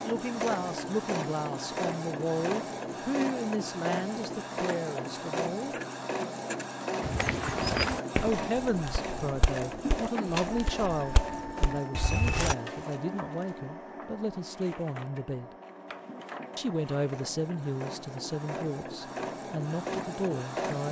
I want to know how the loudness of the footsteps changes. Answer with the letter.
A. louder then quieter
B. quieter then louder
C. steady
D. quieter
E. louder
B.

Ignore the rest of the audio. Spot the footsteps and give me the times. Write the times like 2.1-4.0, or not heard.
7.0-12.6.